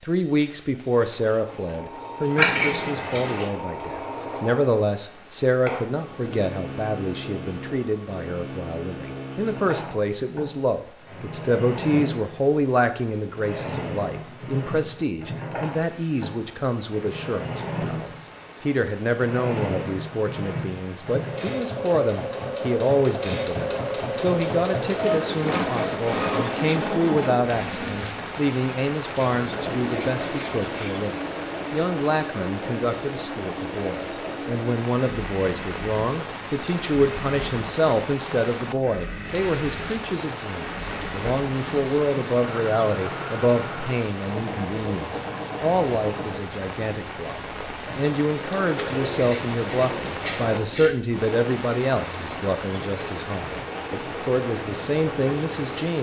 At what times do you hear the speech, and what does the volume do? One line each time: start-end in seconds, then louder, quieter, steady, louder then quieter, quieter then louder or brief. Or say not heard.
0.0-55.9 steady.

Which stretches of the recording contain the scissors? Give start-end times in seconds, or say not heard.
2.4-3.5, 29.1-31.2, 48.8-51.0.